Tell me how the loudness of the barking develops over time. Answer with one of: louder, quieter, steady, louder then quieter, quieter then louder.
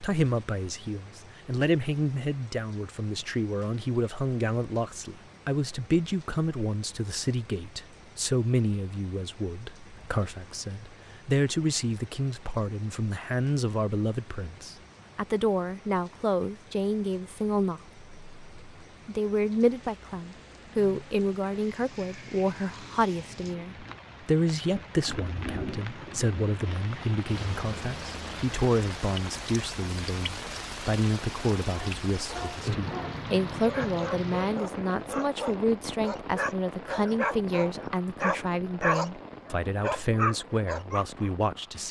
louder.